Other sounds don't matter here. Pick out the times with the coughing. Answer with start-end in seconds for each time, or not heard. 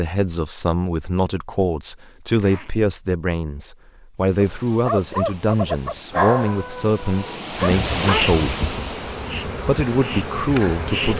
not heard.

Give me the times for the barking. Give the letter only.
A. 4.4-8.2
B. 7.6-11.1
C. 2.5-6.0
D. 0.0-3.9
A.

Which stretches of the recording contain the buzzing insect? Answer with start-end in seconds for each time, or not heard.
7.6-11.1.